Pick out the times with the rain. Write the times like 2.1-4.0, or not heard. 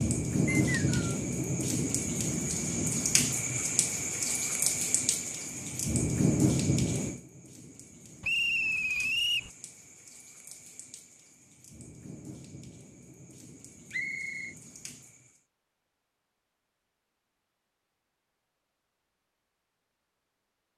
0.0-15.4.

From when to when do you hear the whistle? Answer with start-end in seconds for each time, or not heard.
0.5-1.1, 8.2-9.5, 13.9-14.6.